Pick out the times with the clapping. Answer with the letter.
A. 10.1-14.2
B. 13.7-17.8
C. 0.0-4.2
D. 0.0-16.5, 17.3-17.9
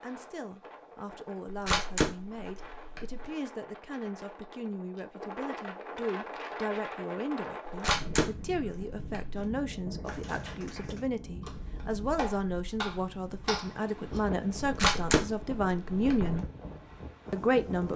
A.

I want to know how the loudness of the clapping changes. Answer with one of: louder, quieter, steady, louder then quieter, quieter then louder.
louder.